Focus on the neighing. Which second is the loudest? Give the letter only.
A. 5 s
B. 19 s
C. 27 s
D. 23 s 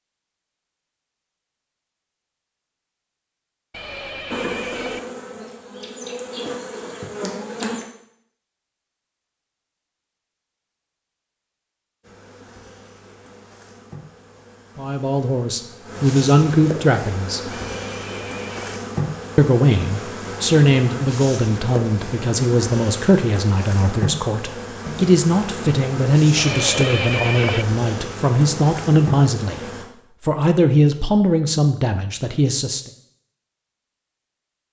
C.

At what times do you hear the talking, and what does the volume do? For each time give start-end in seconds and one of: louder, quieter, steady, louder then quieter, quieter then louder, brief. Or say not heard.
14.8-17.6 brief
19.4-32.9 steady.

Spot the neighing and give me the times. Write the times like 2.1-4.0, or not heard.
3.7-5.0, 17.5-18.8, 26.4-27.6.